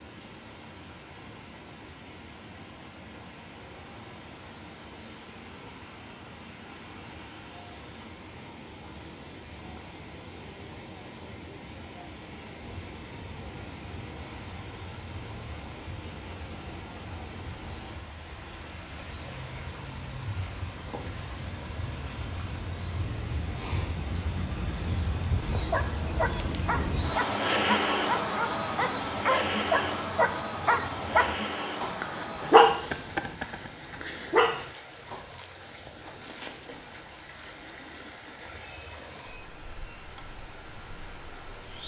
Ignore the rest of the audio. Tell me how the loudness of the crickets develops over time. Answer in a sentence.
The volume of the crickets goes up, then down.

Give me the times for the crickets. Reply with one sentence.
You can hear the crickets from 12.6 to 41.8 s.